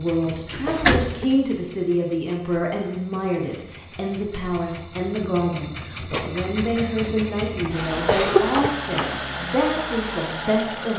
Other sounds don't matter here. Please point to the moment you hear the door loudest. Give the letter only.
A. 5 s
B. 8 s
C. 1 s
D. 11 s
C.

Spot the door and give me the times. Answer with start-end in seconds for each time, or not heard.
0.2-1.2, 8.5-9.3.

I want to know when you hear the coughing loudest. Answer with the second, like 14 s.
8 s.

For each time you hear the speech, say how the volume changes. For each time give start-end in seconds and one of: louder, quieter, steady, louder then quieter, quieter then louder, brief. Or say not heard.
0.0-10.9 steady.